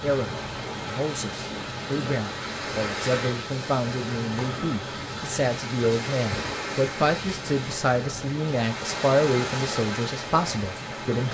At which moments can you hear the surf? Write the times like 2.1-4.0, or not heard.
0.0-11.3.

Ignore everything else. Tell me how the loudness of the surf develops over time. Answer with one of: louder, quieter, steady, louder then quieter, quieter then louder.
steady.